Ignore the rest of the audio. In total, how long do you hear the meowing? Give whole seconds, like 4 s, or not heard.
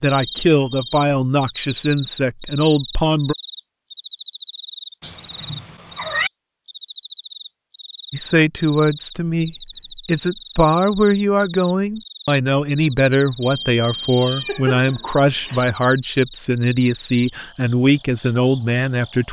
3 s.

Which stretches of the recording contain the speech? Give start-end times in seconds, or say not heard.
0.0-3.4, 8.1-19.2.